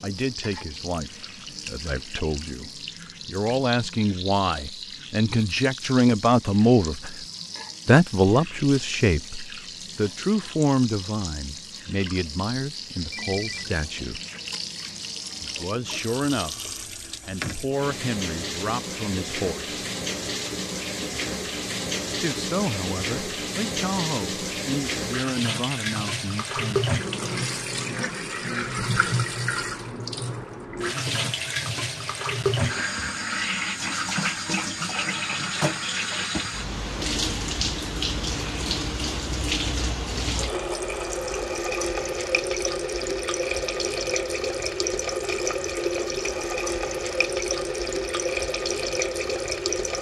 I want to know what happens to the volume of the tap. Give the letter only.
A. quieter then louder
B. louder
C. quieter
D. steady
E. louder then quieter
B.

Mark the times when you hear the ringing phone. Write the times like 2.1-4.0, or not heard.
13.1-13.8.